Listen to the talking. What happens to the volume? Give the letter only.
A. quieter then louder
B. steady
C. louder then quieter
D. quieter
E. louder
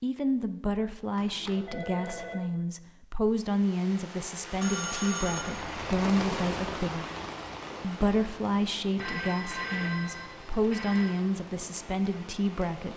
B.